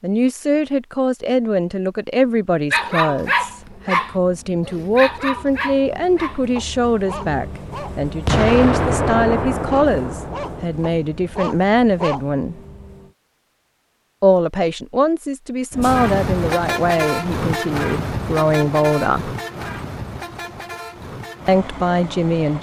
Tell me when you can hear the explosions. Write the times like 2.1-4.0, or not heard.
8.2-10.7.